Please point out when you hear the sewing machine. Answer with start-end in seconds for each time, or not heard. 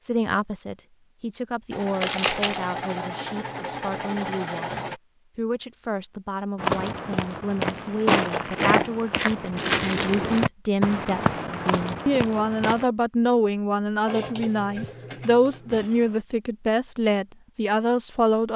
1.7-5.0, 14.1-16.2.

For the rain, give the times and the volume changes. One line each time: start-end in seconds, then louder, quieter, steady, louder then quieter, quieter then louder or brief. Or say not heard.
not heard.